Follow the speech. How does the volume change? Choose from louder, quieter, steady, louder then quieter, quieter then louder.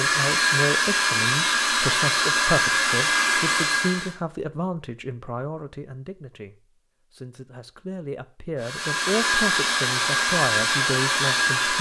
quieter then louder.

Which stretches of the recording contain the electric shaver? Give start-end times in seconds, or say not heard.
not heard.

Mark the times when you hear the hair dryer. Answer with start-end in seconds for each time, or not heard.
0.0-4.2, 8.6-11.7.